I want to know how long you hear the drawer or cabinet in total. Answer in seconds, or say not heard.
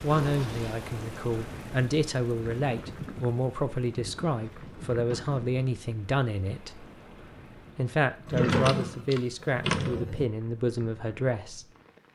4 s.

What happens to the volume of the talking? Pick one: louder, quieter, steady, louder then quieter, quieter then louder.
steady.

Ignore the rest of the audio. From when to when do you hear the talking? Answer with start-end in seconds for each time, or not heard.
0.0-6.8, 7.8-11.7.